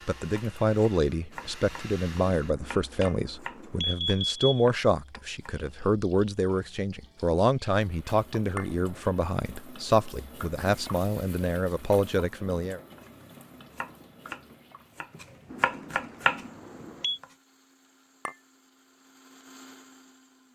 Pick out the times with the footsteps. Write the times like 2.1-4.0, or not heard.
not heard.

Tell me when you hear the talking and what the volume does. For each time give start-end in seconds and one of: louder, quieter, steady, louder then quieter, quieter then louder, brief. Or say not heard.
0.1-12.8 steady.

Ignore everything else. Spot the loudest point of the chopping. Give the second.
16 s.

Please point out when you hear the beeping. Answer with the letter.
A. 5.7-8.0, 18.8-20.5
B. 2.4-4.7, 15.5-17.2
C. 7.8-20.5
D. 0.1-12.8
B.